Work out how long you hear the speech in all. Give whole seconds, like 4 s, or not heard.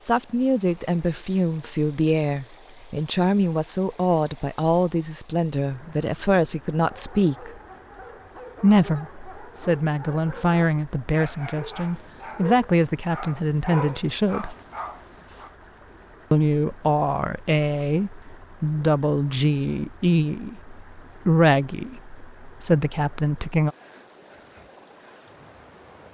21 s.